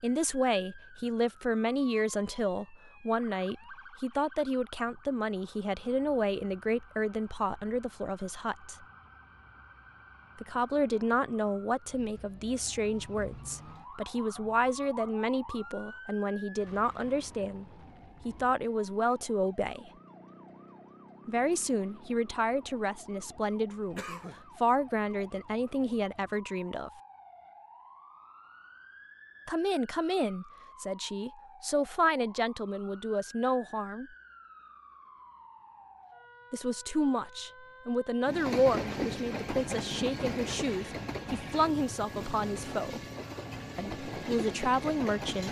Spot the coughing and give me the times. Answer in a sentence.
You can hear the coughing from 23.9 to 24.4 s.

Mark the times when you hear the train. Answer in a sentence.
You can hear the train from 38.2 to 45.4 s.